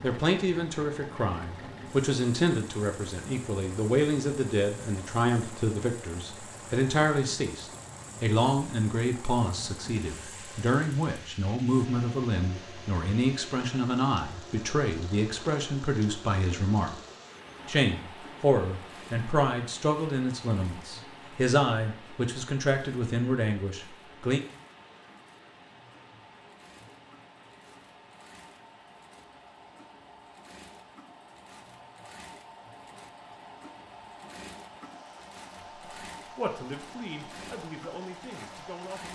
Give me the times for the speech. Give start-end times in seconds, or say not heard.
0.0-16.9, 17.6-24.4, 36.4-39.1.